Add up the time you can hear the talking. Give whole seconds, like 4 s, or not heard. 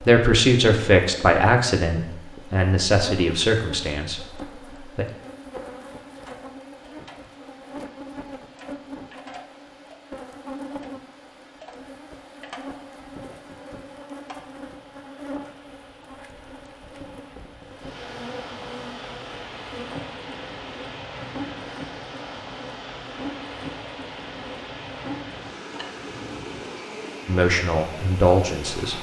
6 s.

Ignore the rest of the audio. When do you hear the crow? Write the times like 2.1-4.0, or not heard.
not heard.